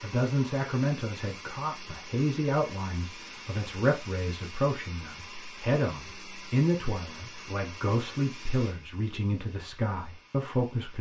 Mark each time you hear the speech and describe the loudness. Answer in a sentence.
You can hear the speech from 0.0 to 10.9 s, at a steady volume.